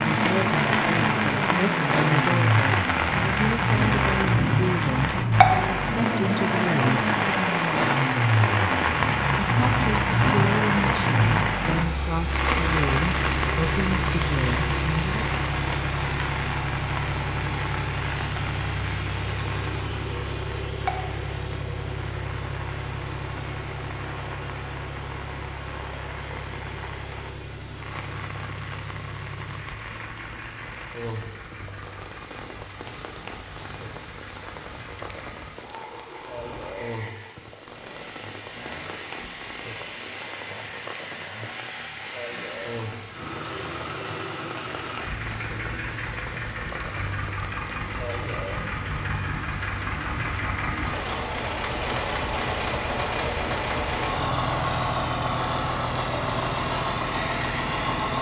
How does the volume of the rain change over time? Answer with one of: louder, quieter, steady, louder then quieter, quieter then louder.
quieter.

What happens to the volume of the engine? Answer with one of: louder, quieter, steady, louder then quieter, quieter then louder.
quieter then louder.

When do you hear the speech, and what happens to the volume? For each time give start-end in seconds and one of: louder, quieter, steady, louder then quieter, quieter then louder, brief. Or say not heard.
0.1-7.0 steady
9.4-15.2 steady.